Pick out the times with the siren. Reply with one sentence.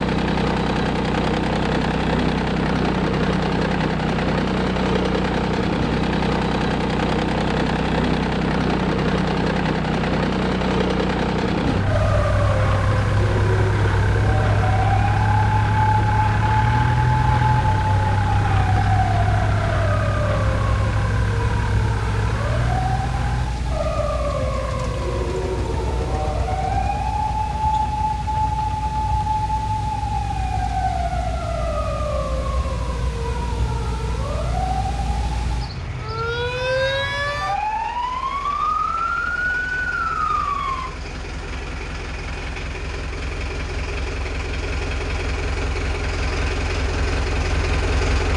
You can hear the siren from 11.7 to 40.9 s.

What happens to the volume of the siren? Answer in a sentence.
The volume of the siren stays about the same.